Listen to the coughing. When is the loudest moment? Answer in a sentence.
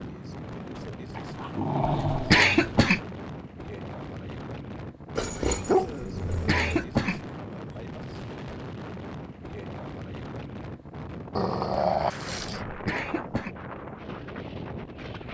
The volume of the coughing peaks at 2 seconds.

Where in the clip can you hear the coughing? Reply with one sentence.
The coughing can be heard from 1.8 to 3.0 s, from 6.2 to 7.2 s and from 12.7 to 13.6 s.